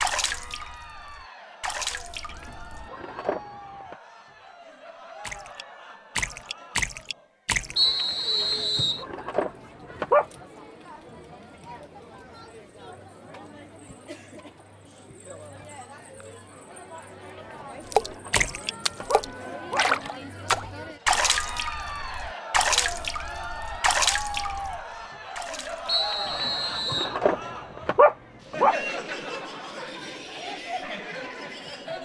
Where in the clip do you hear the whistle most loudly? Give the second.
8 s.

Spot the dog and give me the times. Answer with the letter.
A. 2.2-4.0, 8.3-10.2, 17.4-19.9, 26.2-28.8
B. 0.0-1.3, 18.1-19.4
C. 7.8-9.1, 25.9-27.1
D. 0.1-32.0
A.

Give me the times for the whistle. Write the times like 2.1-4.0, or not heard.
7.8-9.1, 25.9-27.1.